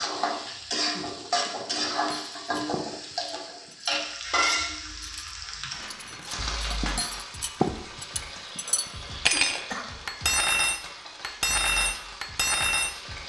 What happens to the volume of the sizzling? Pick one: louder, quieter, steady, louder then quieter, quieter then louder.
quieter.